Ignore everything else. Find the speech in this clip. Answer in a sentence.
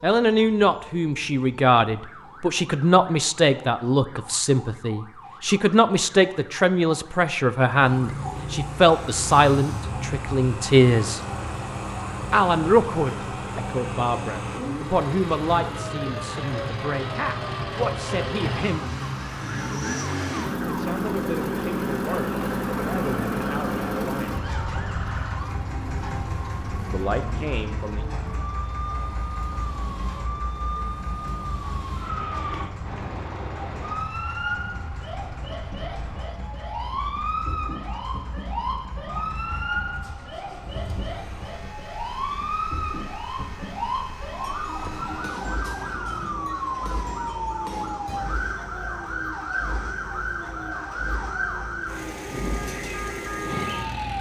The speech can be heard from 0.0 to 11.2 s, from 12.3 to 18.9 s, from 20.6 to 24.4 s and from 26.9 to 28.1 s.